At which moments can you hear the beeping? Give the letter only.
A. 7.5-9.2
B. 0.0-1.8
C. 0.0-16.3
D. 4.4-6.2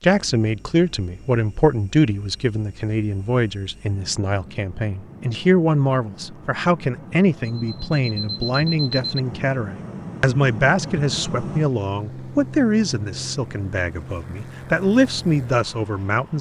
A.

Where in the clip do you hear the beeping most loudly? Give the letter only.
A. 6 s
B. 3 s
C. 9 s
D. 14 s
C.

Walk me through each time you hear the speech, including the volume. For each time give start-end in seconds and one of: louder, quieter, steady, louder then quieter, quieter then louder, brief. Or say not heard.
0.0-16.3 steady.